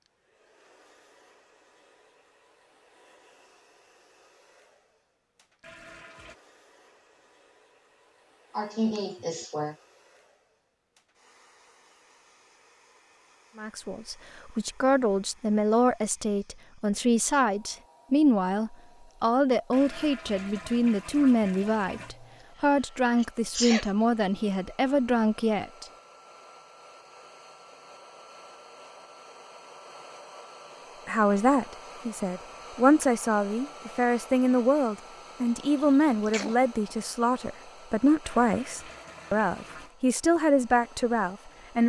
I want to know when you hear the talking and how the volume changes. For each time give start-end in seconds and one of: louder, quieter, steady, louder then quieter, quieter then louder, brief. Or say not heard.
13.6-25.9 steady
31.1-41.8 steady.